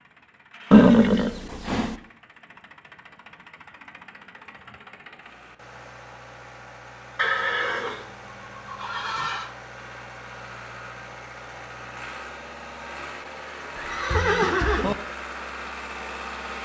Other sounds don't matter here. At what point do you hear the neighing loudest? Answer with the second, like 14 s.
1 s.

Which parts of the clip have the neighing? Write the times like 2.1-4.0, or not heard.
0.7-1.9, 7.2-9.5, 13.8-14.9.